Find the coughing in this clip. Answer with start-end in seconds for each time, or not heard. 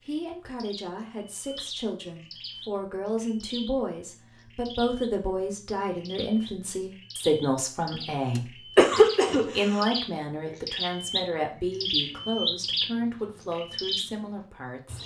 8.3-9.8.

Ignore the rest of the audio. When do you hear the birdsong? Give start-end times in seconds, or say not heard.
0.0-15.0.